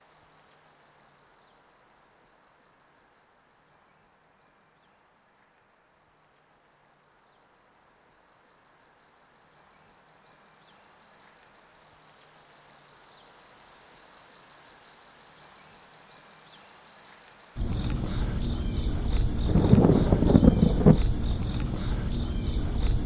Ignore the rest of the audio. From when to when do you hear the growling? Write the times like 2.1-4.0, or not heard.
not heard.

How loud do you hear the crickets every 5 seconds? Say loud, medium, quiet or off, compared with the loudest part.
quiet, quiet, loud, loud, loud.